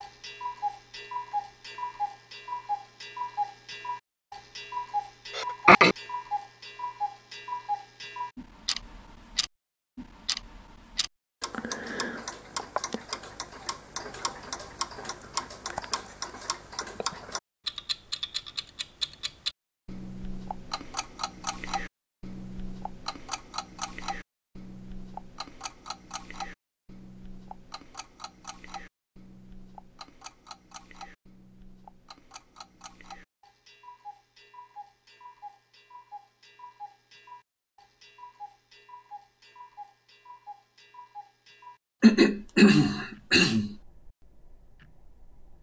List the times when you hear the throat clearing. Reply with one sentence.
You can hear the throat clearing from 5.3 to 6.0 s and from 42.0 to 43.8 s.